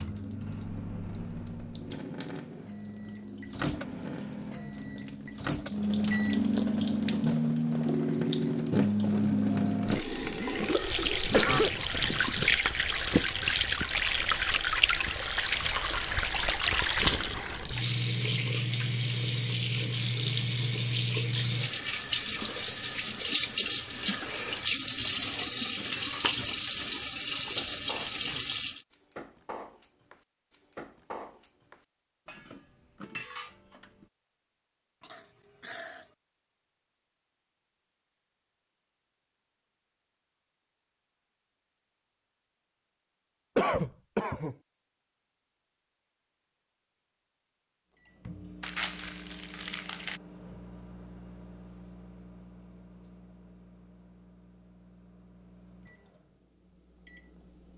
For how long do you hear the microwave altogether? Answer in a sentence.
The microwave can be heard for 16 seconds in total.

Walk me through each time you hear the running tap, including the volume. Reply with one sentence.
The running tap can be heard from 0.0 to 28.8 s, getting louder.